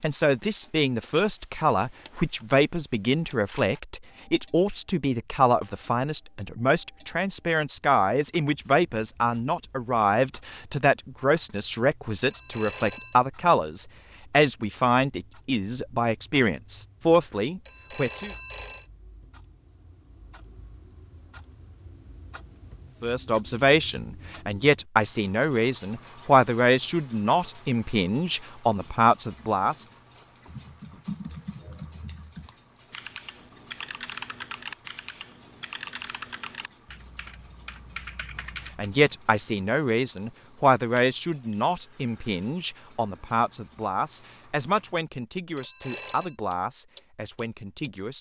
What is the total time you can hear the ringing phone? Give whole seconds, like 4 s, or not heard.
3 s.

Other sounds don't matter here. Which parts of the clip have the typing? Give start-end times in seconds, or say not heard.
30.4-39.0.